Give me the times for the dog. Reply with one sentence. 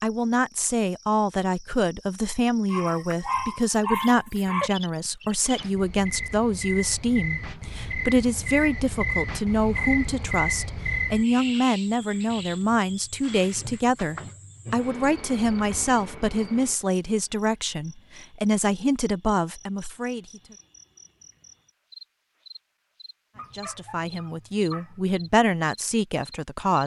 You can hear the dog from 2.7 to 4.7 s and from 23.4 to 25.1 s.